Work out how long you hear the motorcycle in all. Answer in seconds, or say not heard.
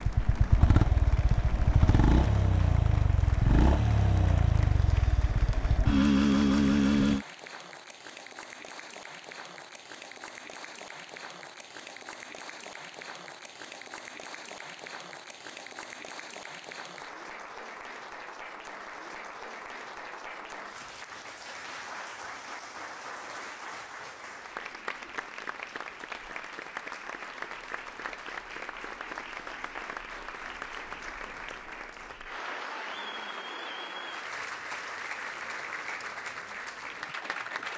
7 s.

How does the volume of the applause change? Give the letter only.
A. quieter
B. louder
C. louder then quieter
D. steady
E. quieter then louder
B.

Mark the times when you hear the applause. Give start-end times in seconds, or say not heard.
0.0-37.7.